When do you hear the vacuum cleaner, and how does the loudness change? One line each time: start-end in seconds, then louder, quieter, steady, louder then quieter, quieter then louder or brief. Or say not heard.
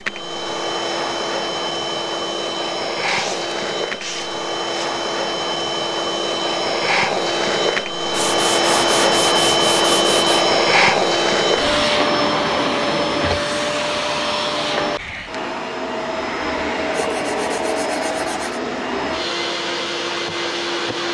0.0-21.0 louder then quieter.